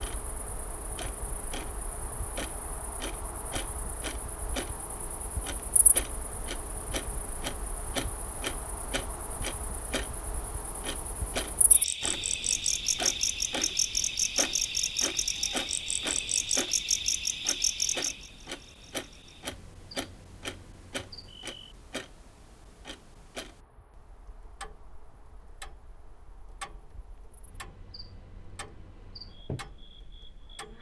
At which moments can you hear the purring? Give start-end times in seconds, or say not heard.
not heard.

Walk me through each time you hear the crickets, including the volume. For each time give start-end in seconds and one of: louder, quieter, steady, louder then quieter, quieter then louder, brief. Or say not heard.
0.0-30.7 louder then quieter.